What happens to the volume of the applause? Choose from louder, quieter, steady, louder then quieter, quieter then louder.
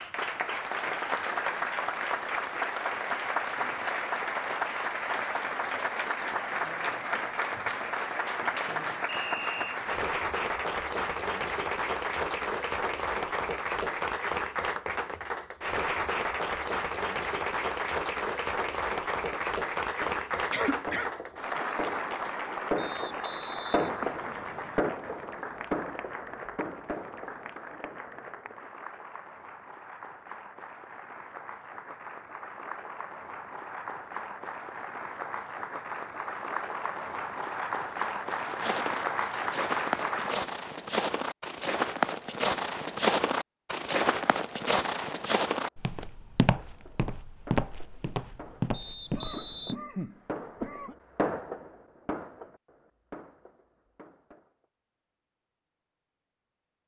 quieter then louder.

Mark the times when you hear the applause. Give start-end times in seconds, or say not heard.
0.0-40.4.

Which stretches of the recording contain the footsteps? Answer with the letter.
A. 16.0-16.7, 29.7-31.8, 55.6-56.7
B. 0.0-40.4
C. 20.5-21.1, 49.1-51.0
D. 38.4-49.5
D.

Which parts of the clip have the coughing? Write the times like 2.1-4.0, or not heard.
20.5-21.1, 49.1-51.0.